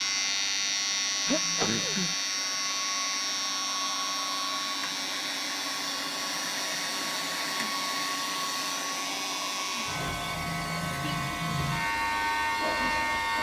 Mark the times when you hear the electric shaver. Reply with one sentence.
You can hear the electric shaver from 0.0 to 13.3 s.